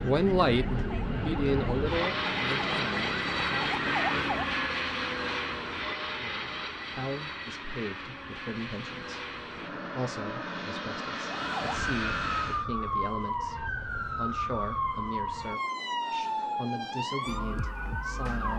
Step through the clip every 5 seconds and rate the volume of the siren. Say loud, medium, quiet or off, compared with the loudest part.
loud, off, loud, loud.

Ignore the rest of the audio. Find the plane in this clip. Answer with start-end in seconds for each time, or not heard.
0.0-12.7.